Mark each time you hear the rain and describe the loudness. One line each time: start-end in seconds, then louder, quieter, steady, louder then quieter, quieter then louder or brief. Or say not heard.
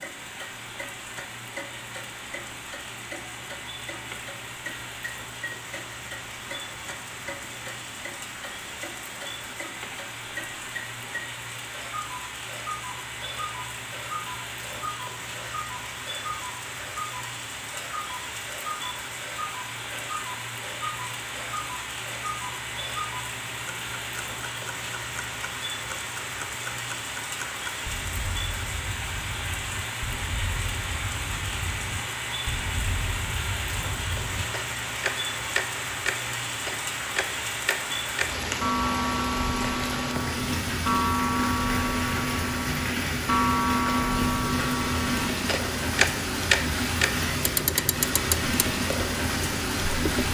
0.0-50.3 louder.